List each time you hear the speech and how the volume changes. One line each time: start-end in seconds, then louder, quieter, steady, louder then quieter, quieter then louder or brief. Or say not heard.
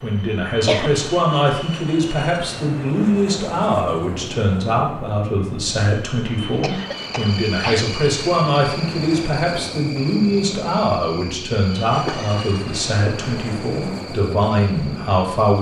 0.0-15.5 steady.